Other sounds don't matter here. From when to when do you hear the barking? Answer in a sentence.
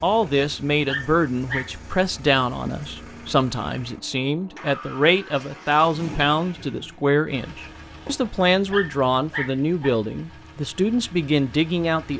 You can hear the barking from 0.2 to 1.7 s and from 8.1 to 9.9 s.